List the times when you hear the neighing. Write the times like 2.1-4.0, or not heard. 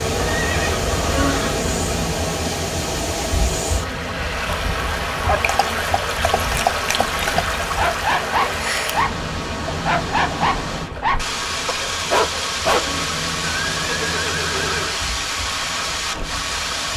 0.1-1.6, 7.0-7.6, 12.8-15.0.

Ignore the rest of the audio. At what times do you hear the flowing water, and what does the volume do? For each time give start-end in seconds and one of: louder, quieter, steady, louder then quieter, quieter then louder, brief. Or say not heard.
0.0-16.9 steady.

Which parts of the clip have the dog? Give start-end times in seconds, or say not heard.
5.2-13.0.